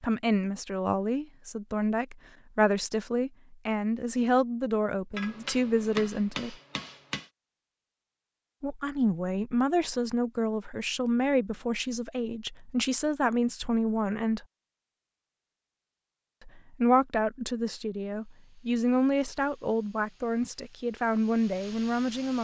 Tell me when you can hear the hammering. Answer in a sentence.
The hammering can be heard from 5.2 to 7.3 s.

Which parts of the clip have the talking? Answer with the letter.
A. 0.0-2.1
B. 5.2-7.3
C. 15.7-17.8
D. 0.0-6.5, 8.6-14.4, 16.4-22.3
D.